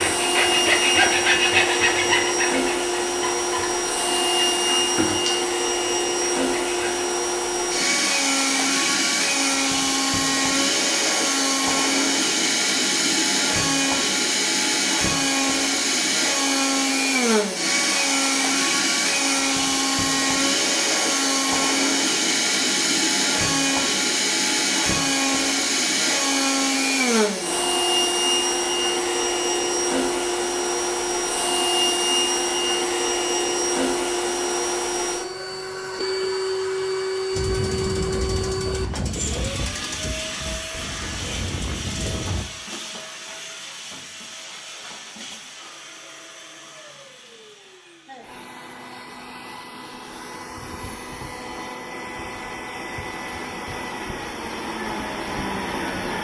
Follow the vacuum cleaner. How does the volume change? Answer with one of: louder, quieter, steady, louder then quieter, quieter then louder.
quieter.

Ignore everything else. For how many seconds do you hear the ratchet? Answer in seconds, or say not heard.
5 s.